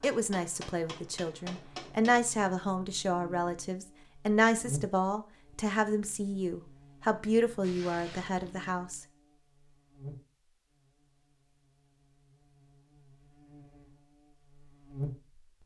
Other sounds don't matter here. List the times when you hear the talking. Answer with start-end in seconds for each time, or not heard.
0.0-9.1.